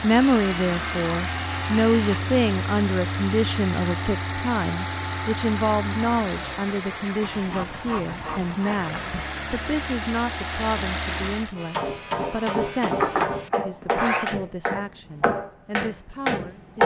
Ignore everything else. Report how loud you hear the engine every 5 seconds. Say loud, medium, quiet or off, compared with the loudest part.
loud, loud, loud, off.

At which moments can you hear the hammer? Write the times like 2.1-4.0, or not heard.
11.6-16.8.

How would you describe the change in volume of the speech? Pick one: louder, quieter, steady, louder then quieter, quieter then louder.
quieter.